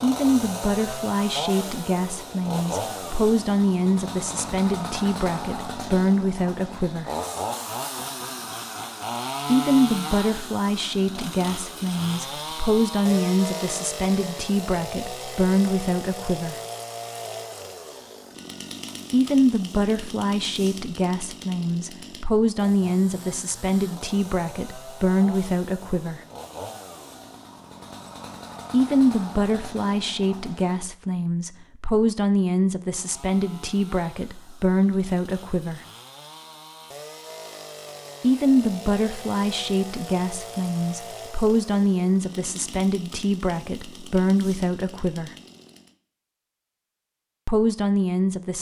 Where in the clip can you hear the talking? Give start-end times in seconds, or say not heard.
0.0-7.1, 9.4-16.6, 19.1-26.2, 28.7-35.8, 38.2-45.4, 47.5-48.5.